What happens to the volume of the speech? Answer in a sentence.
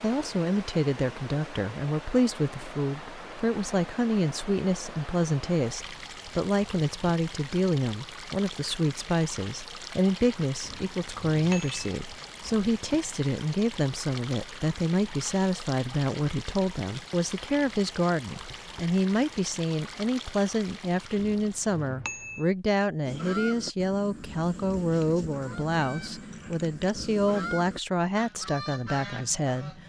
The volume of the speech stays about the same.